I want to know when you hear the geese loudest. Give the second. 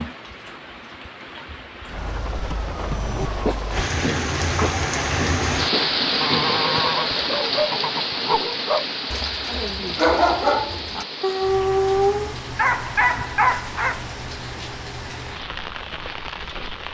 7 s.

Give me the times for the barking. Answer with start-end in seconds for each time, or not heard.
2.9-14.0.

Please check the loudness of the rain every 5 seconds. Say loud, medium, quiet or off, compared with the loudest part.
medium, loud, medium, medium.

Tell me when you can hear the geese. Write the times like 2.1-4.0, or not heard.
6.2-8.4.